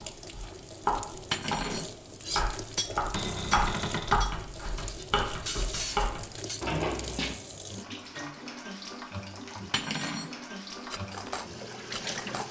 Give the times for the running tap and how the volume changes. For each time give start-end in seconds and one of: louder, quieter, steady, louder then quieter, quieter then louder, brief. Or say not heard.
0.0-12.4 steady.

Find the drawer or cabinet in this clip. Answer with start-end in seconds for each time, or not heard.
3.1-4.3, 6.6-7.3.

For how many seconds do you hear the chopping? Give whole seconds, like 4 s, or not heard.
6 s.